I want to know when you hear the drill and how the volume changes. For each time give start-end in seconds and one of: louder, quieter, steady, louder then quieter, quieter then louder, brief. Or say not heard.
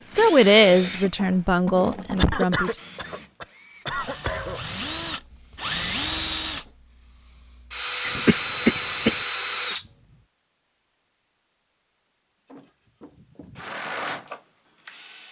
0.0-9.9 quieter then louder
12.4-15.2 brief.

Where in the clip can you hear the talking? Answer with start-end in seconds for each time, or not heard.
0.0-2.8.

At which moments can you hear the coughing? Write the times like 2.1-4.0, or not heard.
2.1-4.6, 8.0-9.2.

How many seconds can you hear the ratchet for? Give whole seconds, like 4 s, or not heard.
not heard.